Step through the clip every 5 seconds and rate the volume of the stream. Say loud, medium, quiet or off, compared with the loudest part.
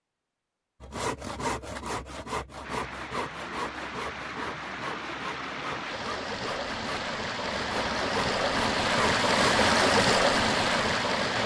quiet, loud, loud.